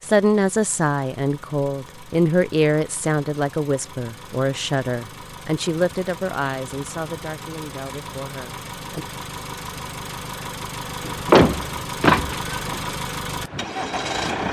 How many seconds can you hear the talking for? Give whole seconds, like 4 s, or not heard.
9 s.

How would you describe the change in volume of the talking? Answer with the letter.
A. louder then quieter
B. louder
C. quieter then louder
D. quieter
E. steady
D.